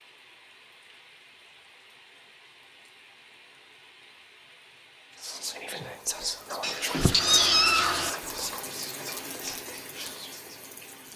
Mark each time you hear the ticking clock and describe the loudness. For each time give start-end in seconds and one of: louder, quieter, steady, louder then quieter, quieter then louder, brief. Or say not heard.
not heard.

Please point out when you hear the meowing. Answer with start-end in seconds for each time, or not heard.
6.6-8.1.